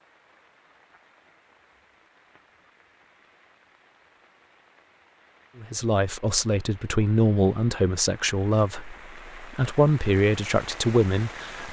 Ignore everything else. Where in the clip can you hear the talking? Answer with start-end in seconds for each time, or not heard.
5.5-11.6.